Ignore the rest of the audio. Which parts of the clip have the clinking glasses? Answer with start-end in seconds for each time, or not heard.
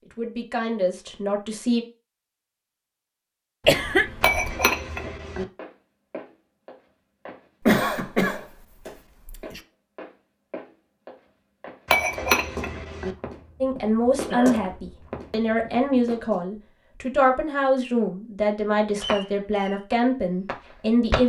4.2-5.5, 11.8-13.2.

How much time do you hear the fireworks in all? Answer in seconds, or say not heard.
2 s.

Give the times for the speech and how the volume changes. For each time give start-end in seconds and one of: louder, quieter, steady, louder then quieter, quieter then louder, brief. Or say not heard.
0.1-1.9 brief
13.6-21.2 steady.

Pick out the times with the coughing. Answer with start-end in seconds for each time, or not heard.
3.6-4.6, 7.7-9.6, 14.2-14.7.